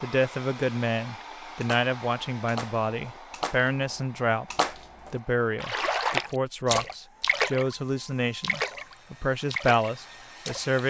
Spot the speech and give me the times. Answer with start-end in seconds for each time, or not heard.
0.0-4.5, 5.1-10.8.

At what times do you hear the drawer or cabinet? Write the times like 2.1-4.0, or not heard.
not heard.